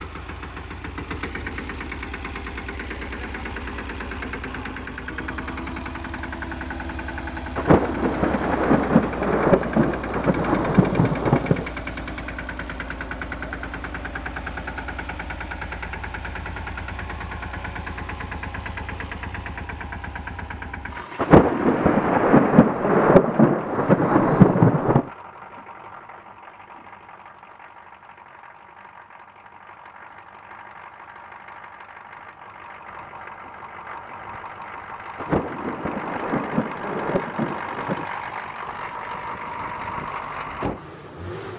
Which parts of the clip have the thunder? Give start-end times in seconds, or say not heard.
7.5-11.8, 21.1-25.1, 35.1-38.1.